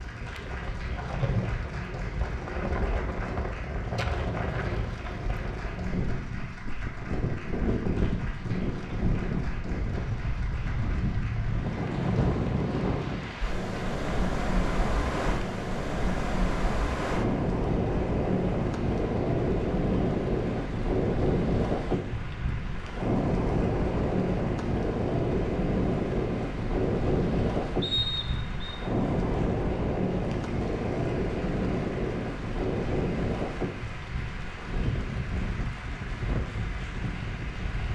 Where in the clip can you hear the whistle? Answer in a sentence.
The whistle can be heard from 27.8 to 28.8 s.